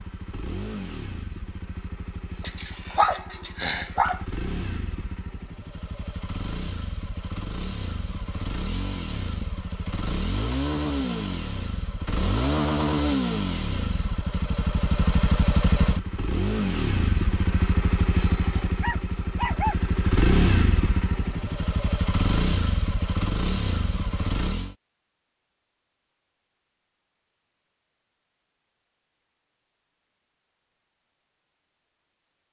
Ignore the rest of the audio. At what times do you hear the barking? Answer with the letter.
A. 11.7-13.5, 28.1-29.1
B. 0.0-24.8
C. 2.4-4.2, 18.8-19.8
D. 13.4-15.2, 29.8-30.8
C.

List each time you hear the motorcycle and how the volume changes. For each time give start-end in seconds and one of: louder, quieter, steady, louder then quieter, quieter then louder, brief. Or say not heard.
0.0-24.8 louder.